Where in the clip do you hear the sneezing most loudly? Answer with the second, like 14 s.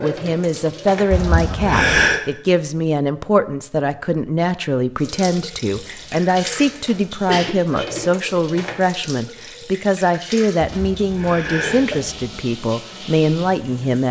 2 s.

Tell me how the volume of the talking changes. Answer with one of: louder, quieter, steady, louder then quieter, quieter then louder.
steady.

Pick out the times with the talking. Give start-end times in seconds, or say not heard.
0.0-14.0.